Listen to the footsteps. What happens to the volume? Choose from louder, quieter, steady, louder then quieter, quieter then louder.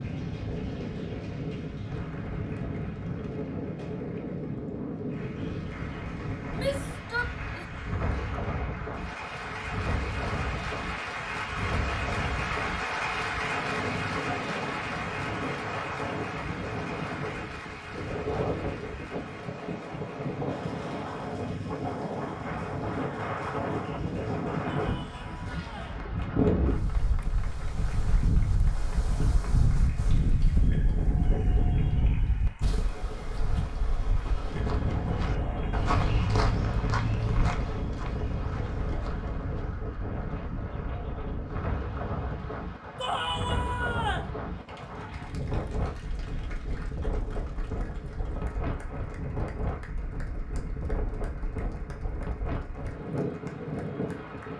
louder then quieter.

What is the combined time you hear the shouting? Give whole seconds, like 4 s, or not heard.
4 s.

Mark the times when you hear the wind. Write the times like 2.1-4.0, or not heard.
0.0-54.5.